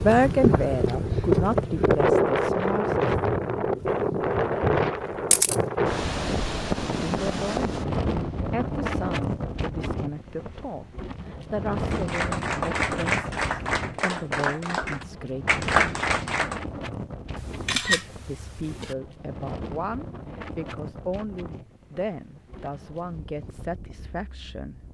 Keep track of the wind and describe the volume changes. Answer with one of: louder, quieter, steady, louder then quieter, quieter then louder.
quieter.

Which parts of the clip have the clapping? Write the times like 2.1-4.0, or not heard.
11.8-16.6.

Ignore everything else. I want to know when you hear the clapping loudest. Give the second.
16 s.